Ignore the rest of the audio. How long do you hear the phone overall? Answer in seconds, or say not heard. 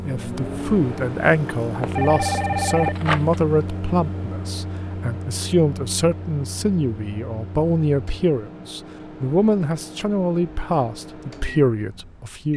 2 s.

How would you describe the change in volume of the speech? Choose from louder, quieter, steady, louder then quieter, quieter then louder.
steady.